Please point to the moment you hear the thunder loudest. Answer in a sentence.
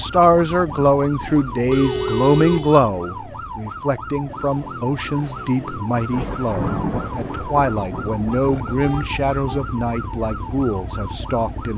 The loudest moment of the thunder is at 7 seconds.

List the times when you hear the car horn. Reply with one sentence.
The car horn can be heard from 1.7 to 2.9 s and from 8.3 to 9.7 s.